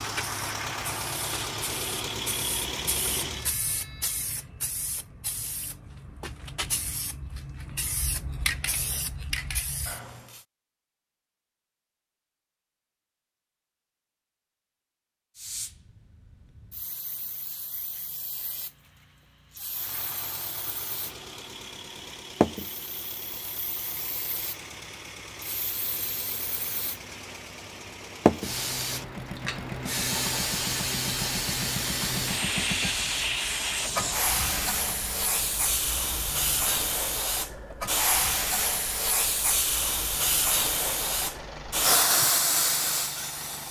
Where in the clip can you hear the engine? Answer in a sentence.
You can hear the engine from 0.0 to 3.5 s and from 19.7 to 43.6 s.